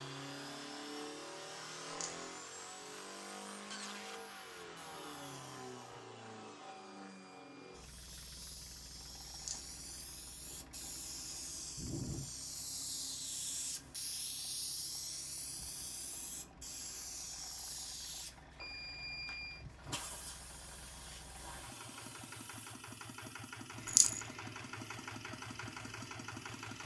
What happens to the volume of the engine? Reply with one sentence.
The loudness of the engine goes down, then up.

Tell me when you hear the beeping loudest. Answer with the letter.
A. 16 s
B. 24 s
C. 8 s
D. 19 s
D.